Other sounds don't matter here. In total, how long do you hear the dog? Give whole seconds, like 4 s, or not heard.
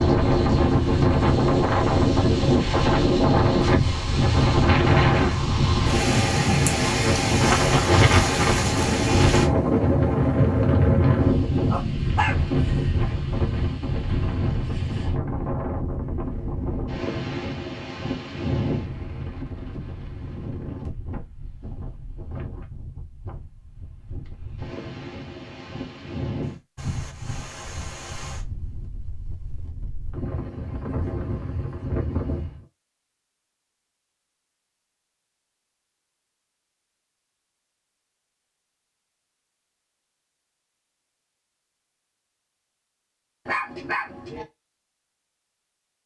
2 s.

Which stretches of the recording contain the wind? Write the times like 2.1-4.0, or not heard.
0.0-32.6.